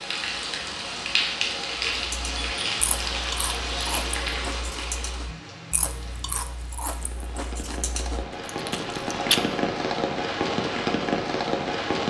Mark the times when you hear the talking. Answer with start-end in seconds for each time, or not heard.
not heard.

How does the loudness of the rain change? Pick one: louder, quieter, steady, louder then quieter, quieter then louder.
quieter then louder.